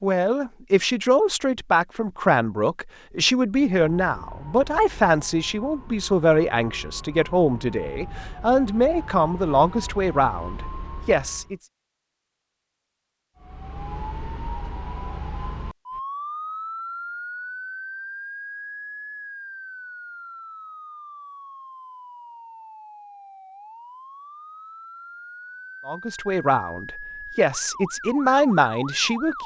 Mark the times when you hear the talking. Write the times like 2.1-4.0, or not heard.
0.0-11.6, 25.9-29.4.